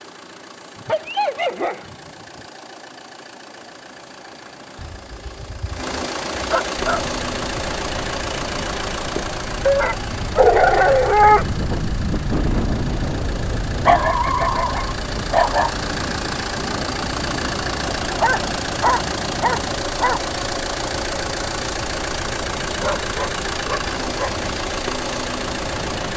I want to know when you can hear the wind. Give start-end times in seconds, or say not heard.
6.8-26.1.